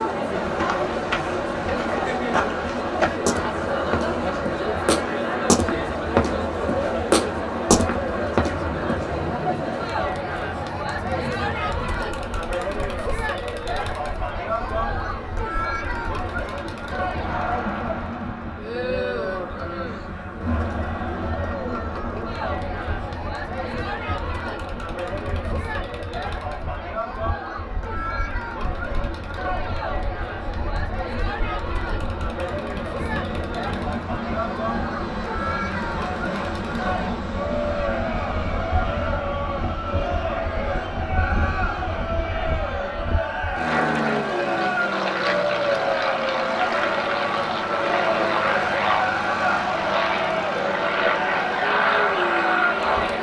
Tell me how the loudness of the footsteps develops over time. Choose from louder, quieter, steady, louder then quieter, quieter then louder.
louder.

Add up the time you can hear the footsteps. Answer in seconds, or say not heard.
9 s.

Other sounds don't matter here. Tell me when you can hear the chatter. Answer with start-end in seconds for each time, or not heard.
0.0-53.1.